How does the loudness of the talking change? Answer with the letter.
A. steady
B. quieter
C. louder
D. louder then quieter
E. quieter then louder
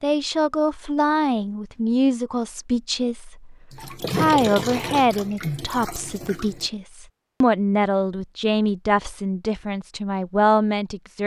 A.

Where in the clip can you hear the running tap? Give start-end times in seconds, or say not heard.
3.7-6.7.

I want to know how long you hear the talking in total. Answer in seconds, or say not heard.
11 s.